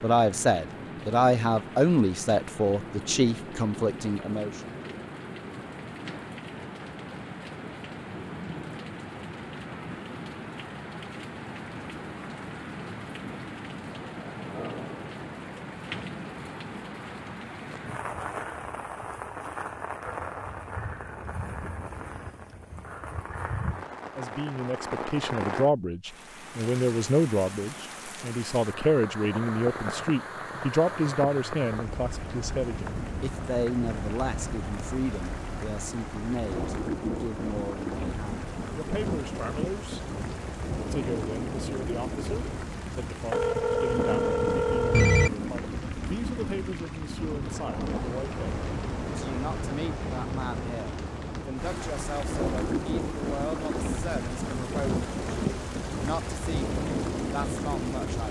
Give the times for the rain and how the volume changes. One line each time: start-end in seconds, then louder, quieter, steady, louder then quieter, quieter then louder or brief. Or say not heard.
0.0-58.2 louder.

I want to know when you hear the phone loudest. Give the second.
45 s.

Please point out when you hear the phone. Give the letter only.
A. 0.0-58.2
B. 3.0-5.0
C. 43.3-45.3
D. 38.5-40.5
C.